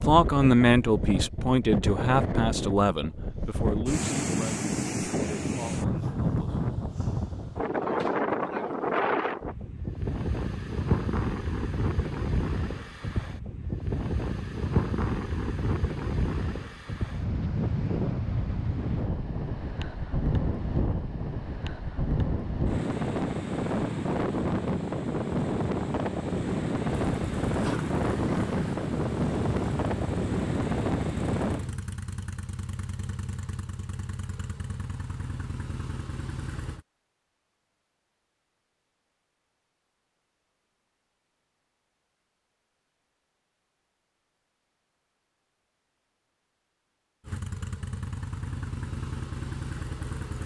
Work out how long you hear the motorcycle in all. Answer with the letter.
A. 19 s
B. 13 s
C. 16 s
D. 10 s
B.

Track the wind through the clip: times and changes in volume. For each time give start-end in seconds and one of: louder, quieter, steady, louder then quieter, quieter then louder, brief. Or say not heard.
0.0-31.8 steady.